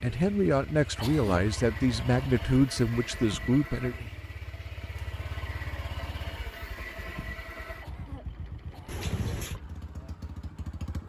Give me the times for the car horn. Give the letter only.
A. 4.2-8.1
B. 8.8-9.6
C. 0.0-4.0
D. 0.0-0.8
B.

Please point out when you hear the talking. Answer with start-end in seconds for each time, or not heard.
0.0-4.0.